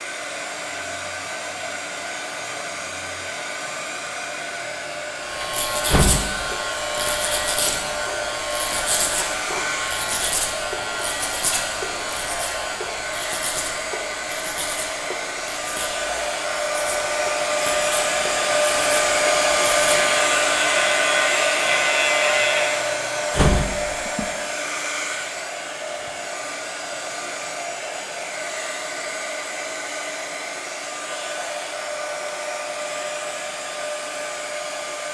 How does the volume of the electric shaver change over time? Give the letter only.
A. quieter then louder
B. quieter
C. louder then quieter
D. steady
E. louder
A.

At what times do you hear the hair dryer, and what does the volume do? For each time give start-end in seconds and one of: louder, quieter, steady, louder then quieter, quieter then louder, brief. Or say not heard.
0.0-35.0 louder then quieter.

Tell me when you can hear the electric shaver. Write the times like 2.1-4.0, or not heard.
5.2-22.8.